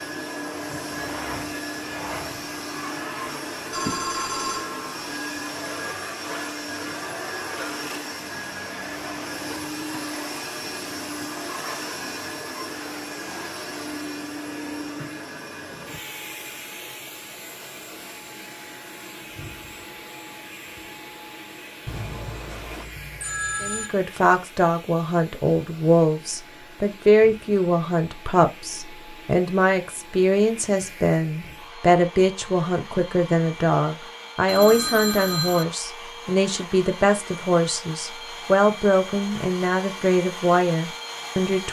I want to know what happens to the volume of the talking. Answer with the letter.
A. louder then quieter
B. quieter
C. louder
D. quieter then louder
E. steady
E.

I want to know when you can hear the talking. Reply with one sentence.
You can hear the talking from 23.6 to 41.6 s.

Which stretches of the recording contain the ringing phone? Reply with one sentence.
You can hear the ringing phone from 3.2 to 4.9 s, from 21.9 to 23.9 s and from 34.5 to 35.6 s.